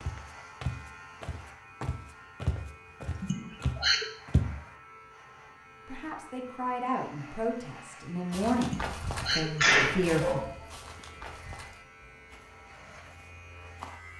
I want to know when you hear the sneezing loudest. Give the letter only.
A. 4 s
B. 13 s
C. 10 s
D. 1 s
C.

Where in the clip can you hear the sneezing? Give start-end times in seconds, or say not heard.
3.2-4.0, 8.7-10.5.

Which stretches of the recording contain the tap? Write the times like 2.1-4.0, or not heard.
not heard.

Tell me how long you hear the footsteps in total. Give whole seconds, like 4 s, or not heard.
10 s.